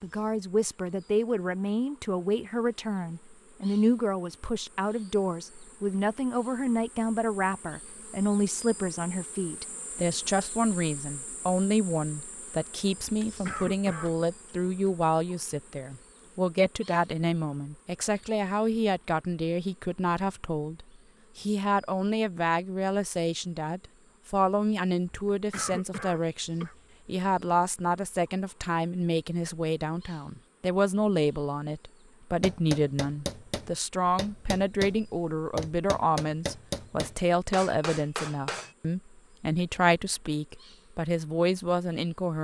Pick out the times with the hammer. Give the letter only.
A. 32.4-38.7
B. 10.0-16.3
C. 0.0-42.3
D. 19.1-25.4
A.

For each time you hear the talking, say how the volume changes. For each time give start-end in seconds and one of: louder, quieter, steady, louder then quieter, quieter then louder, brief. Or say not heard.
0.0-42.3 steady.